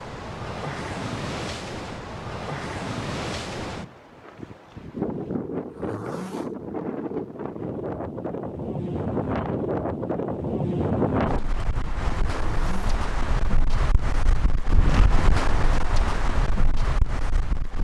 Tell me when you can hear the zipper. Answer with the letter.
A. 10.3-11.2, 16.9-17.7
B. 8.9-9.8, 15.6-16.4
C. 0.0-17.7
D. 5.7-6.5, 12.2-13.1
D.